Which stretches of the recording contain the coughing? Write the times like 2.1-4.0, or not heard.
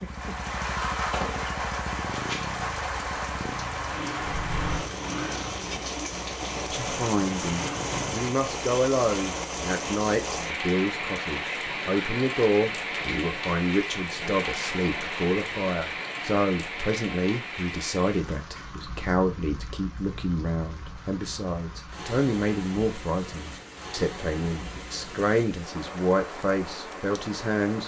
not heard.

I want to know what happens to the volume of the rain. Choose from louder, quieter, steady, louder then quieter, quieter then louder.
quieter.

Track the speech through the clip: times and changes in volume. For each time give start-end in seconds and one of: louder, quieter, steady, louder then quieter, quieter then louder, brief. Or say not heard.
6.7-27.8 steady.